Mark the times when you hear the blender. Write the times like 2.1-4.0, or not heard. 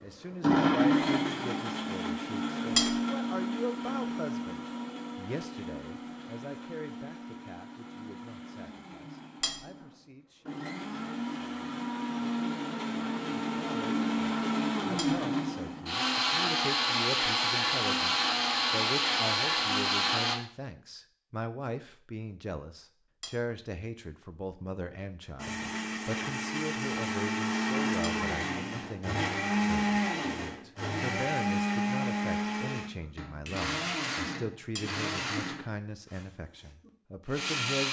0.3-20.4, 25.4-37.8.